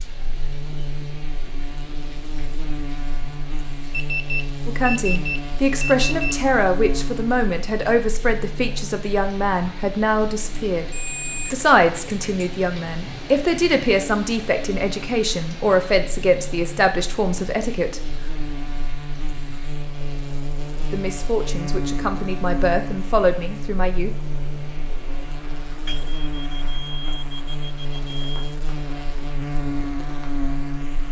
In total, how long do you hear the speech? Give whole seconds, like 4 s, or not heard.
16 s.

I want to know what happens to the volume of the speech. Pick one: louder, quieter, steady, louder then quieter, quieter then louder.
steady.